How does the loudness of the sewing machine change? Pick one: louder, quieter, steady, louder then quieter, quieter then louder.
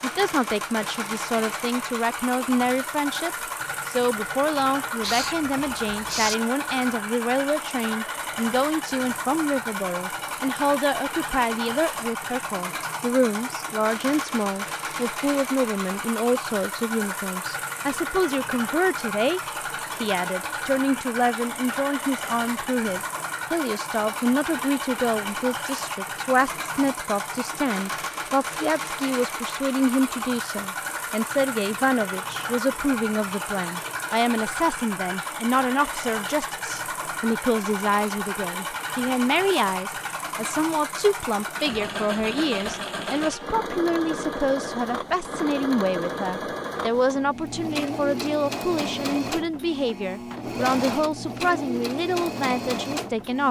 steady.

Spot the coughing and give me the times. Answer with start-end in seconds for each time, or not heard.
not heard.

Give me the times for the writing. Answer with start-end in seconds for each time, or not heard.
5.0-6.3.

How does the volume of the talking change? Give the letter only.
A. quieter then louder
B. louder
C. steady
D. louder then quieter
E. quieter
C.